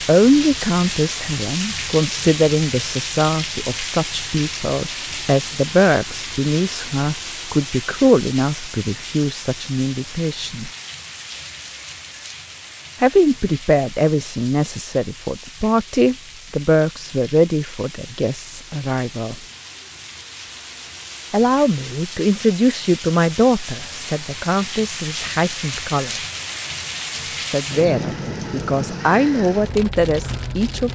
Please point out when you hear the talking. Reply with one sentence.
The talking can be heard from 0.0 to 10.7 s, from 13.0 to 19.4 s, from 21.3 to 26.2 s and from 27.4 to 30.9 s.